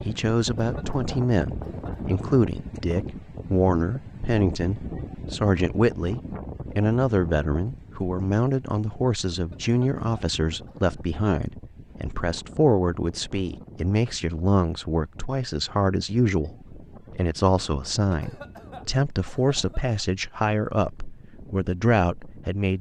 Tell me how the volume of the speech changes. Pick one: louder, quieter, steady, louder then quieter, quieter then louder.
steady.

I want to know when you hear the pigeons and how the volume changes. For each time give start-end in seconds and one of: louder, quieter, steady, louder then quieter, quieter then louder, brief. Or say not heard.
not heard.